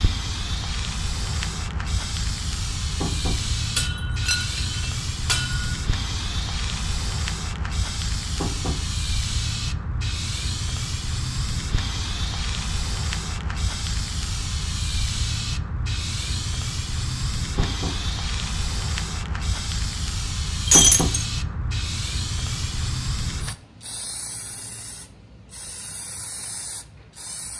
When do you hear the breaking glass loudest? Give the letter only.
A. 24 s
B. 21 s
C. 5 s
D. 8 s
B.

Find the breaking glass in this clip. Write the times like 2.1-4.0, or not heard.
3.8-5.8, 20.6-21.2.